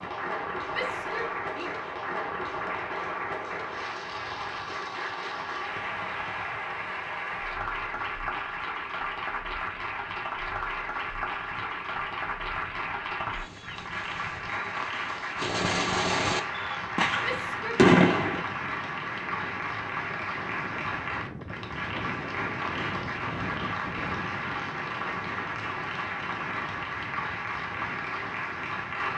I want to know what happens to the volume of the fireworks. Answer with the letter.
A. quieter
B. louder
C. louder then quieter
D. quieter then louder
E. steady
B.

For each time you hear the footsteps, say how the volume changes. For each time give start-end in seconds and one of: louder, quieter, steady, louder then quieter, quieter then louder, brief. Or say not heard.
not heard.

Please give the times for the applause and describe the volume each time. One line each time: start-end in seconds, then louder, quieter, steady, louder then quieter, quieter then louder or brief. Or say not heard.
0.0-29.1 steady.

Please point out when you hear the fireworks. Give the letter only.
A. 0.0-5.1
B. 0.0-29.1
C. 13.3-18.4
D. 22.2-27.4
C.